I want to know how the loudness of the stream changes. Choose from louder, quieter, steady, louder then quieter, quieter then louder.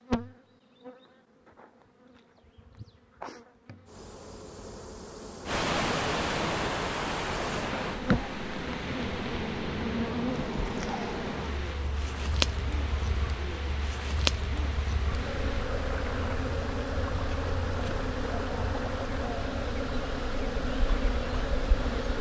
quieter.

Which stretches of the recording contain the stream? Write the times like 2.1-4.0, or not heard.
5.5-21.9.